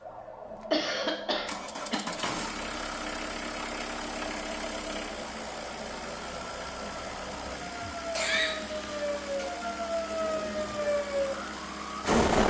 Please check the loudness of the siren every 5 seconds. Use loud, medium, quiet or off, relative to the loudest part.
quiet, medium, loud.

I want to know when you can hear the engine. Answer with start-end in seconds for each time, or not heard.
0.6-12.2.